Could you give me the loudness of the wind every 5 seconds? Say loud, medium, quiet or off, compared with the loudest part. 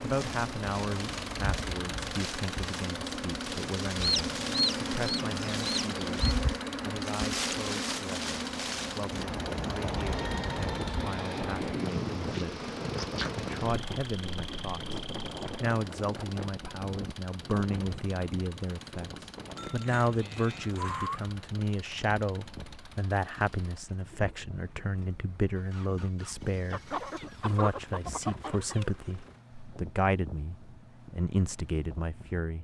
medium, loud, loud, medium, quiet, quiet, quiet.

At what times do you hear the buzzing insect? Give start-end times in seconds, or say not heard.
0.0-15.7.